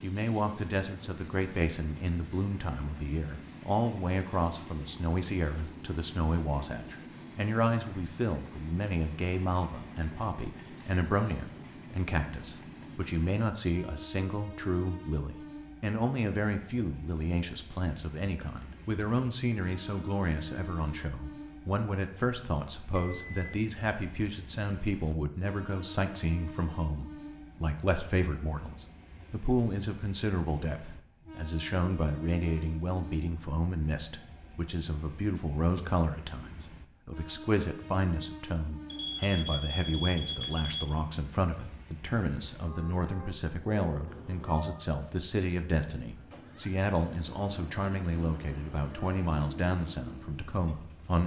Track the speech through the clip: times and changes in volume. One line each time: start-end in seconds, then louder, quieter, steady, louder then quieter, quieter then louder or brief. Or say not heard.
0.0-51.2 steady.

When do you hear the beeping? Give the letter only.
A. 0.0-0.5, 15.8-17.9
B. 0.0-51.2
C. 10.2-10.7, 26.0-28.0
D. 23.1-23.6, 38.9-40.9
D.